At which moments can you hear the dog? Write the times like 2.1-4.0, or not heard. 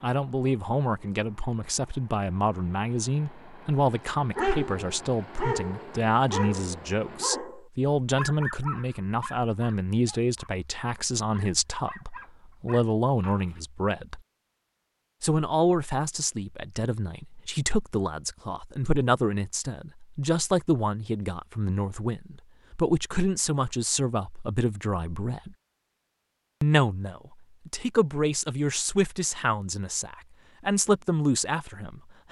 4.3-13.6.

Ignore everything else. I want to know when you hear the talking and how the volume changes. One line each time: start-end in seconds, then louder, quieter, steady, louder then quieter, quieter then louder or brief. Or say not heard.
0.0-14.2 steady
15.2-25.6 steady
26.6-32.2 louder.